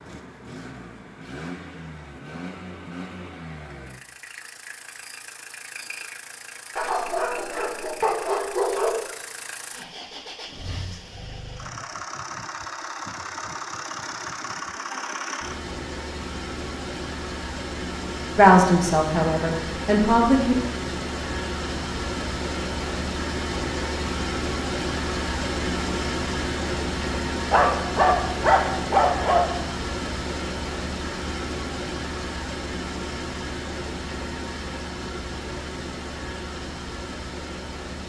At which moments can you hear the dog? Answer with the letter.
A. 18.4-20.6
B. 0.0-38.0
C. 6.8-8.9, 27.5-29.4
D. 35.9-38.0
C.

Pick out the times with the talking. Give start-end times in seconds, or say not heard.
18.4-20.6.